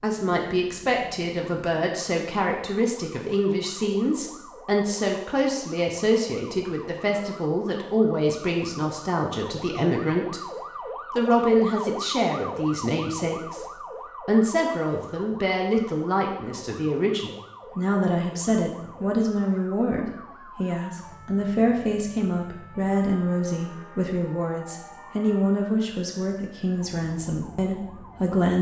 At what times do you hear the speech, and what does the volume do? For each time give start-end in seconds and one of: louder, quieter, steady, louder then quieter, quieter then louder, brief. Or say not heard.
0.0-10.4 steady
11.2-28.5 steady.